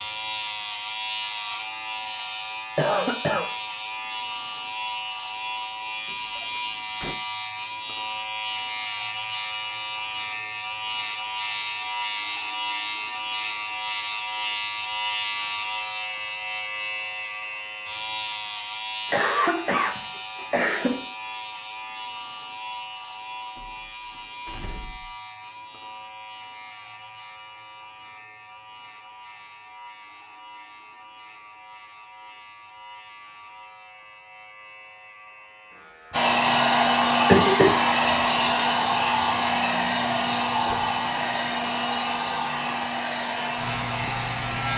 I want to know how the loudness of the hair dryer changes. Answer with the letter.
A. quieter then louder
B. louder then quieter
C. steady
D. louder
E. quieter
E.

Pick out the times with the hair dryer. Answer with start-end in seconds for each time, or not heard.
36.1-44.7.